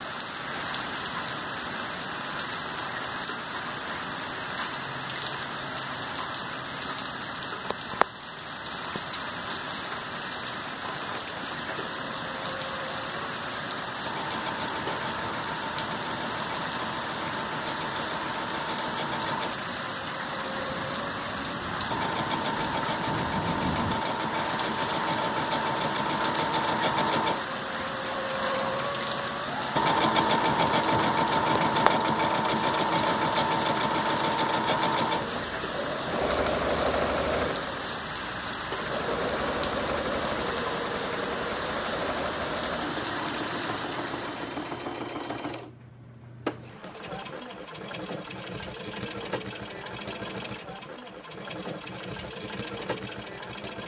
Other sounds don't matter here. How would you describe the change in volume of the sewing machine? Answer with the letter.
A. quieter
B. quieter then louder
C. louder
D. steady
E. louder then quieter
E.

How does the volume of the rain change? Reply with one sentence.
The volume of the rain stays about the same.